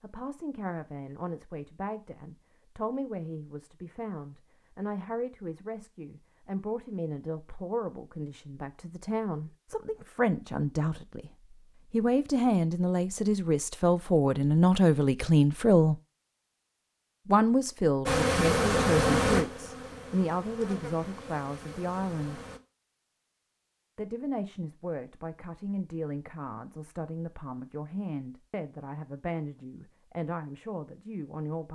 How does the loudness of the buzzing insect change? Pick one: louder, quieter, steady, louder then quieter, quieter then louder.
quieter.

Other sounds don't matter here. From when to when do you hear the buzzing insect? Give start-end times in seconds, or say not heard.
18.1-22.6.